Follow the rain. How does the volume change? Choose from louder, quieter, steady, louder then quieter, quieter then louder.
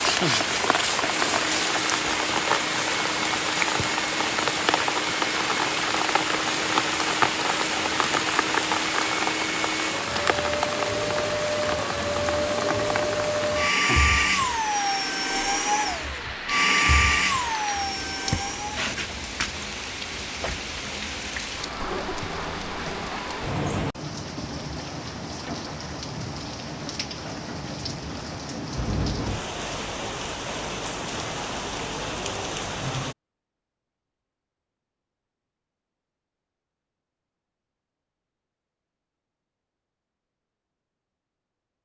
quieter.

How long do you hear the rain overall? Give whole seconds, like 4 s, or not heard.
33 s.